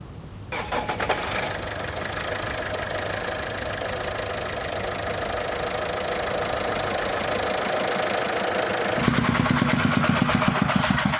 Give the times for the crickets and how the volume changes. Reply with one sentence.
The crickets can be heard from 0.0 to 7.5 s, at a steady volume.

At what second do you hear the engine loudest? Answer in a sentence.
The volume of the engine peaks at 10 seconds.